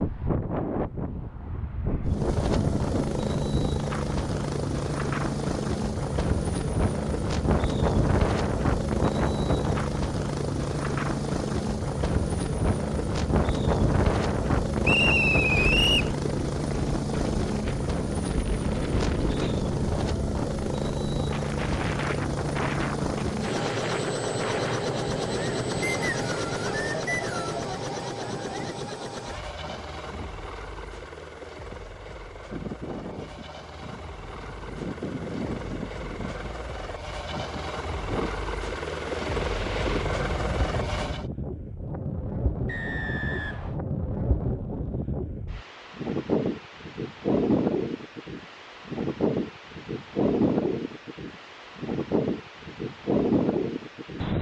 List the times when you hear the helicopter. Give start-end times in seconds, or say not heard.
2.0-41.3.